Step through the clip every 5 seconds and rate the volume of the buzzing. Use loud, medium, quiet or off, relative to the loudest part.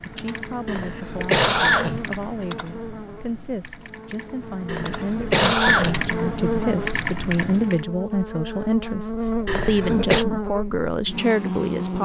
medium, loud, loud.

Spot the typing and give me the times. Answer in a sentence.
The typing can be heard from 0.0 to 7.8 s.